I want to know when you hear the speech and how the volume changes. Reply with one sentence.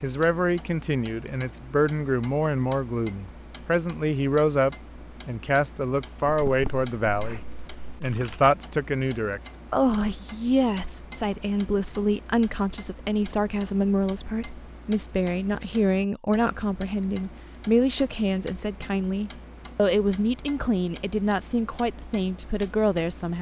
The speech can be heard from 0.0 to 23.3 s, at a steady volume.